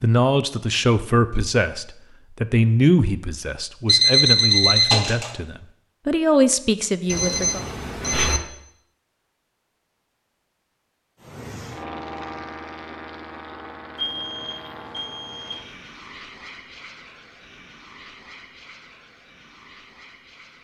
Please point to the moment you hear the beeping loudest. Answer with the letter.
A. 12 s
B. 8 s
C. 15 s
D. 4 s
D.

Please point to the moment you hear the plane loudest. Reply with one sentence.
The volume of the plane peaks at 12 seconds.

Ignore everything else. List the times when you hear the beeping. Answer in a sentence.
The beeping can be heard from 3.9 to 5.3 s, from 7.0 to 8.4 s and from 13.9 to 15.7 s.